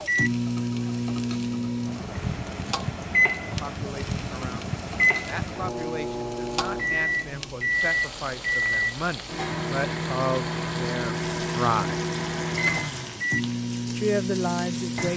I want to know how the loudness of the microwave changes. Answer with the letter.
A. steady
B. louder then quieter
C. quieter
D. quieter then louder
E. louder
A.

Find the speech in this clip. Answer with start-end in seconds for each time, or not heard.
3.5-11.9, 13.8-15.1.